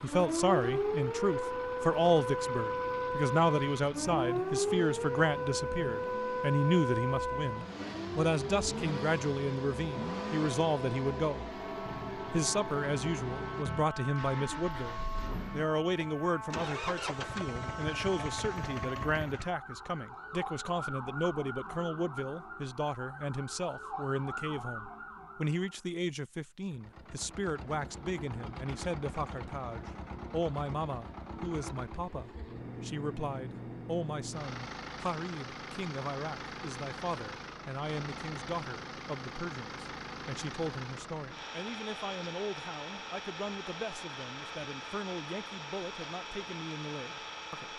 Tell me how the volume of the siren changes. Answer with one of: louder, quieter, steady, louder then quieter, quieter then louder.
quieter.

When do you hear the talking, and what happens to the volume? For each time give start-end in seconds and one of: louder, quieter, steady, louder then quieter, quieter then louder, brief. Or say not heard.
0.0-47.7 quieter.